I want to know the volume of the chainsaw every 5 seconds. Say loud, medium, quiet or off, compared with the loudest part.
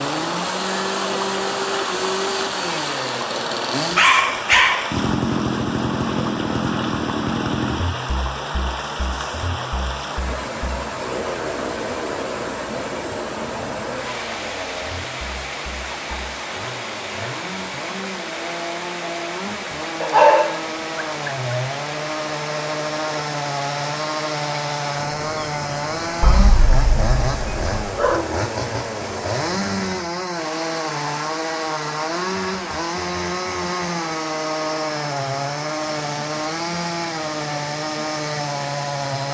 loud, loud, medium, medium, loud, loud, loud, loud.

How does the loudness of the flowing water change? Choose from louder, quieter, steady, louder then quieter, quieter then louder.
quieter.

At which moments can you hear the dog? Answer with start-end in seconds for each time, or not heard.
4.0-4.9, 20.0-21.3, 26.2-28.2.